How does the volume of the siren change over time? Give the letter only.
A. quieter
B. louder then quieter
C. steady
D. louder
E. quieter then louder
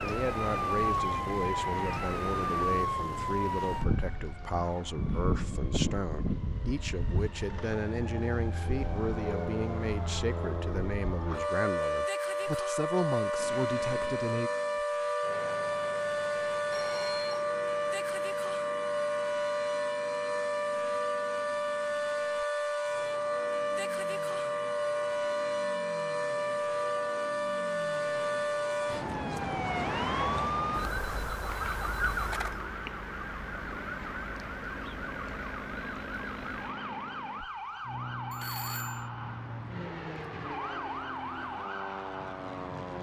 A.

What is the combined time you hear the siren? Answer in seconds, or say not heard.
43 s.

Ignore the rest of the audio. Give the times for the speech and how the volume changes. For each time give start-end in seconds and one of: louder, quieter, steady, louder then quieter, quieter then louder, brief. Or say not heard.
0.0-14.5 steady.